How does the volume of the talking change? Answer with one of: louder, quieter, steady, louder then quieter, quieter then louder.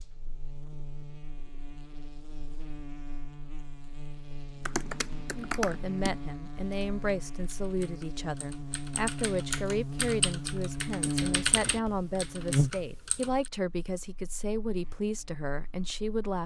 steady.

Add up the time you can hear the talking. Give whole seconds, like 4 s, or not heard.
11 s.